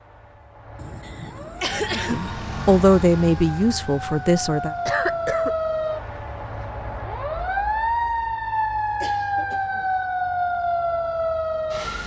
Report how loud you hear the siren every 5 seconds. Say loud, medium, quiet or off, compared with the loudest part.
medium, loud, loud.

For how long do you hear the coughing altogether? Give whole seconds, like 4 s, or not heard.
3 s.